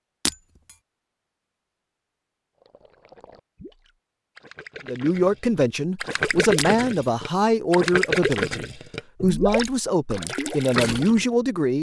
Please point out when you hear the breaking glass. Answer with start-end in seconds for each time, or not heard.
0.2-0.8, 6.5-7.0.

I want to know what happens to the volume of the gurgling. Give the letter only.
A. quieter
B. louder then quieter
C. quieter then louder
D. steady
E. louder
E.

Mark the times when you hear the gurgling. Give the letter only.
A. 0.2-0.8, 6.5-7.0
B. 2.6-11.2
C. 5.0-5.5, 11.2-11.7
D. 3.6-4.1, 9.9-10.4
B.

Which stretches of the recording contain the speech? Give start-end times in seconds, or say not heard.
4.8-11.7.